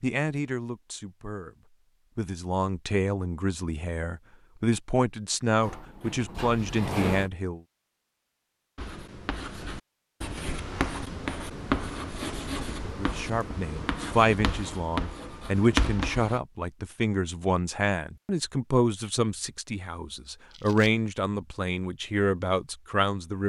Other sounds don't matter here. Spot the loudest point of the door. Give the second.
7 s.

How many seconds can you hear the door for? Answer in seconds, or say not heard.
2 s.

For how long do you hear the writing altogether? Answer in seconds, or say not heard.
8 s.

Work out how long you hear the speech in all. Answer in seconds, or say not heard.
18 s.